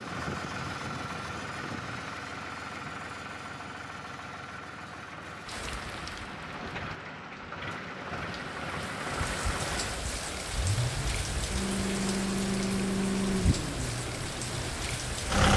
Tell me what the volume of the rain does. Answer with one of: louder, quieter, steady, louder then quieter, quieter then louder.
louder.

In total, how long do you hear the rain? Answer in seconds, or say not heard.
10 s.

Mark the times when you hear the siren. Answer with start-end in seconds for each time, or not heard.
not heard.